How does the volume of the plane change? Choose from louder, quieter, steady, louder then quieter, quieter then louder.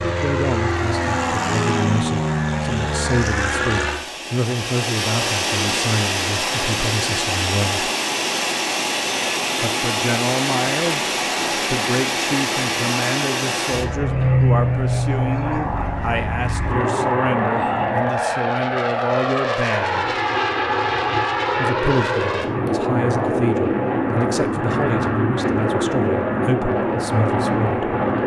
steady.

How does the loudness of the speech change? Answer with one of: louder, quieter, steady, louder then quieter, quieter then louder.
steady.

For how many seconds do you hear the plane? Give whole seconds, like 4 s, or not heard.
28 s.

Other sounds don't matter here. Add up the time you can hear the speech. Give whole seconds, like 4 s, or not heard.
25 s.